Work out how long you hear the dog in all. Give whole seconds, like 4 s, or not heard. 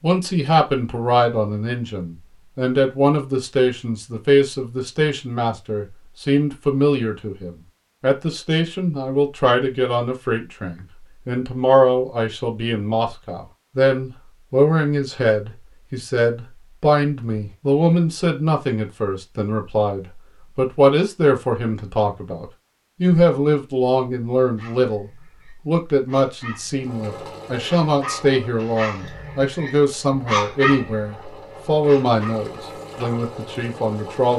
7 s.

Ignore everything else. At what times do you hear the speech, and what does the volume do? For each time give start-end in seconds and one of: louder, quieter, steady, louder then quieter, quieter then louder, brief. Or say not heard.
0.0-34.3 steady.